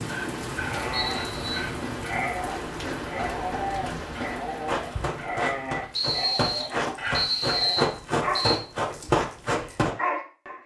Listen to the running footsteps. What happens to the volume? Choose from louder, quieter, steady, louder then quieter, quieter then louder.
louder.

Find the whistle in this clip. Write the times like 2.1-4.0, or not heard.
0.9-1.5, 5.9-8.6.